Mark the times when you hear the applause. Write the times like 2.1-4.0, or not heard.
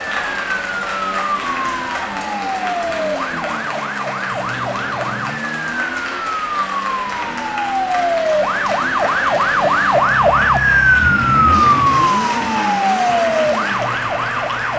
0.0-14.7.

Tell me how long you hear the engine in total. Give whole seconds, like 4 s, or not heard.
15 s.